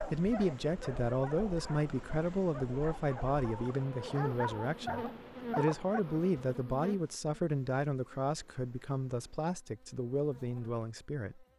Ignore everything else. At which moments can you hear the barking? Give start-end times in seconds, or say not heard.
0.0-6.0.